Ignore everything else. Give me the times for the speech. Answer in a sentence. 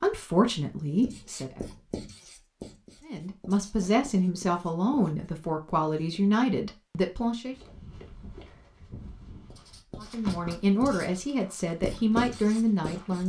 The speech can be heard from 0.0 to 1.6 s, from 3.0 to 7.5 s and from 10.0 to 13.2 s.